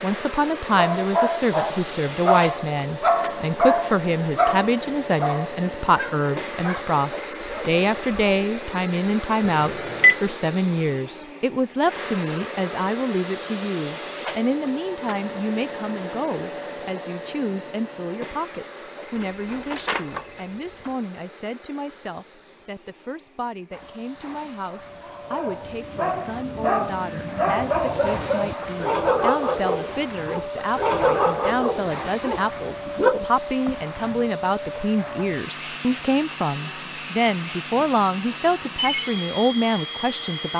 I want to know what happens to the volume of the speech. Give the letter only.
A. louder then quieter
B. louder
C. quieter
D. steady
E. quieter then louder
E.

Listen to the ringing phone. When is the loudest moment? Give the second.
10 s.